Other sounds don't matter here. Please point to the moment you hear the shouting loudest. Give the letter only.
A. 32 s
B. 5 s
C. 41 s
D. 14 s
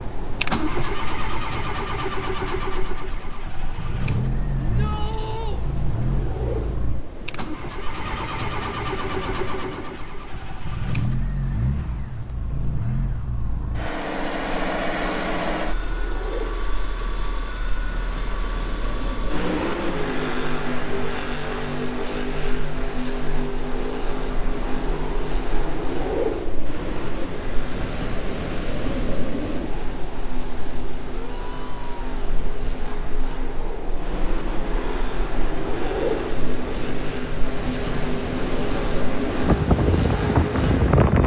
B.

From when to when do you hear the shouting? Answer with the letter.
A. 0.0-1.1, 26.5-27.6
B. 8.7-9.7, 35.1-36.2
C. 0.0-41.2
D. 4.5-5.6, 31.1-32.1
D.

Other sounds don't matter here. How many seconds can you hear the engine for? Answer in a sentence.
The engine can be heard for 41 seconds in total.